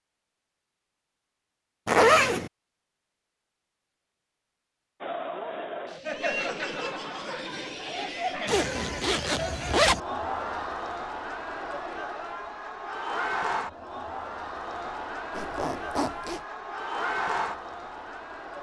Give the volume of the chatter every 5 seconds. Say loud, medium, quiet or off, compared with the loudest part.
off, loud, loud, loud.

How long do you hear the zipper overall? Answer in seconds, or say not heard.
3 s.